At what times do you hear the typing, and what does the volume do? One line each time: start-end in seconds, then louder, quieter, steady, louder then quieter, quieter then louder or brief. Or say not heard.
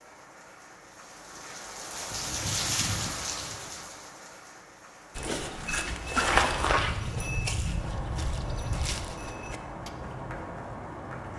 not heard.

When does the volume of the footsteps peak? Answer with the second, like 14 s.
6 s.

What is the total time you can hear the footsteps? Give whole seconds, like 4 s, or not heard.
5 s.